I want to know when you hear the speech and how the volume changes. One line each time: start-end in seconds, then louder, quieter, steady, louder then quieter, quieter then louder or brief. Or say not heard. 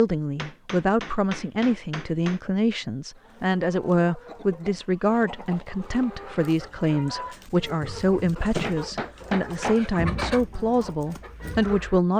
0.0-12.1 steady.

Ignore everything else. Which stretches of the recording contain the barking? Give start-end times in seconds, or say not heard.
not heard.